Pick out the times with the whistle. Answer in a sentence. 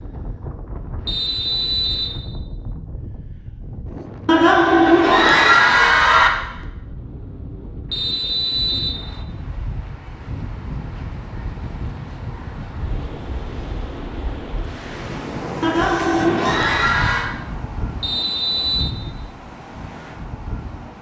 The whistle can be heard from 1.1 to 2.1 s, from 7.9 to 9.0 s and from 18.0 to 18.9 s.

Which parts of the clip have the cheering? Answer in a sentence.
You can hear the cheering from 4.2 to 6.3 s and from 15.6 to 17.3 s.